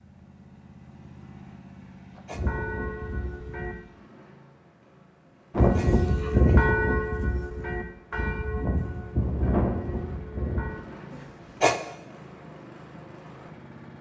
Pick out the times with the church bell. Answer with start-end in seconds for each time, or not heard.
2.3-3.8, 5.5-10.8.